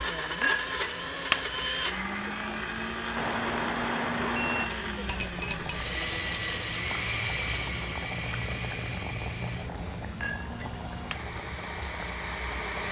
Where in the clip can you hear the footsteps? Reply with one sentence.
You can't hear the footsteps here.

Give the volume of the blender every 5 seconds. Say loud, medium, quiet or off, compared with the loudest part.
loud, loud, medium.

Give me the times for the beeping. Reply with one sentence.
You can hear the beeping from 3.1 to 4.8 s.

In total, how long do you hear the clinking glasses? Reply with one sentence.
You can hear the clinking glasses for 3 seconds altogether.